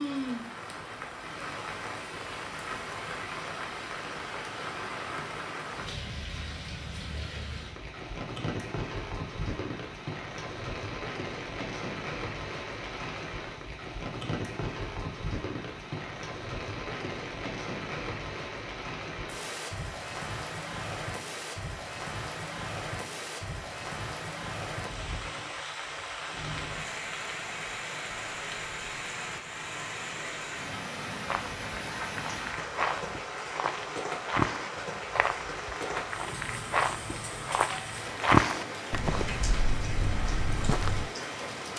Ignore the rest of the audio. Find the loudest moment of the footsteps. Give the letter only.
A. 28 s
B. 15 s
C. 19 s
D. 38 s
D.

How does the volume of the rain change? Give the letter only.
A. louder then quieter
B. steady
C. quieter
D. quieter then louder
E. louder
B.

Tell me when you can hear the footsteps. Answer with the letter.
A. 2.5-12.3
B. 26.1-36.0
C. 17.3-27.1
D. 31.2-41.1
D.